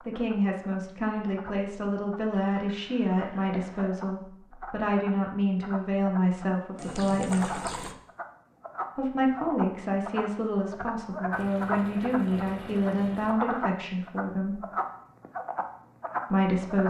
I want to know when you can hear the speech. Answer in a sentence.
The speech can be heard from 0.0 to 7.7 s, from 8.9 to 14.6 s and from 16.3 to 16.8 s.